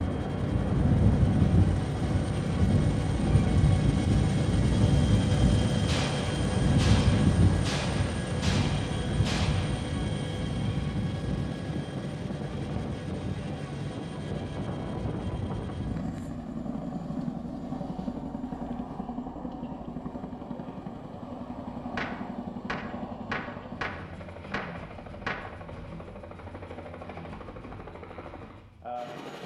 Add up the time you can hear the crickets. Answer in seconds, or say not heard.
not heard.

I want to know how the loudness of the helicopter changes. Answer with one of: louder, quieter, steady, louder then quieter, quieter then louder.
quieter.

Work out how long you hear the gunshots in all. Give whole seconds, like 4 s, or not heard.
8 s.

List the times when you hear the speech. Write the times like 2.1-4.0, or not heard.
not heard.